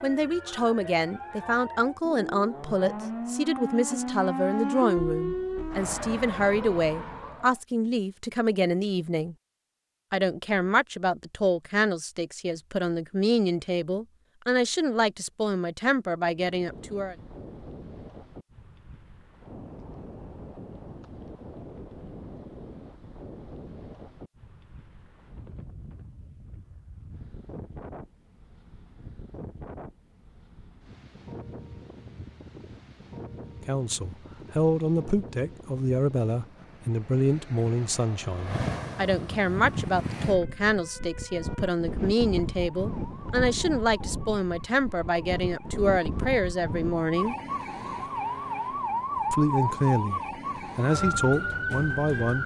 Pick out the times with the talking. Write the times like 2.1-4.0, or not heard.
0.0-9.3, 10.1-17.1, 33.6-47.4, 49.3-52.4.